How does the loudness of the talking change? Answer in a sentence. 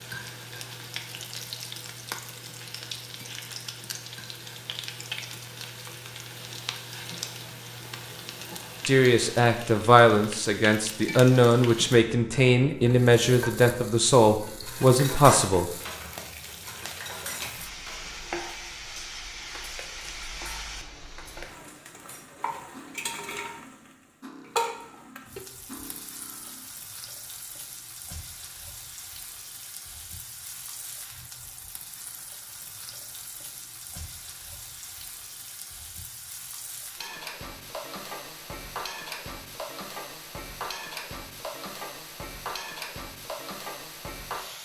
The loudness of the talking stays about the same.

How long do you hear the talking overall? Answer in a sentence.
You can hear the talking for 7 seconds altogether.